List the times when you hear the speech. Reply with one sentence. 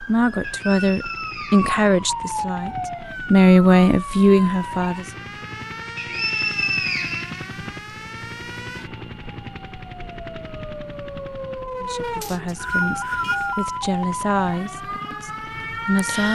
You can hear the speech from 0.0 to 5.2 s and from 11.8 to 16.3 s.